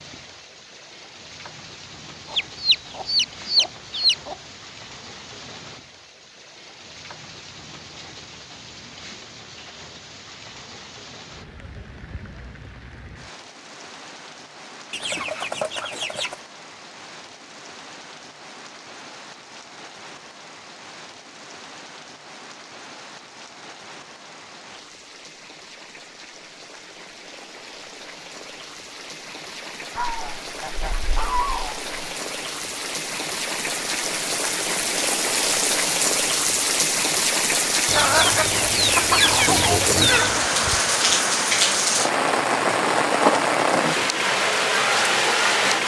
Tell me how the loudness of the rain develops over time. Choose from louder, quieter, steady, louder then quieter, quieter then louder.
louder.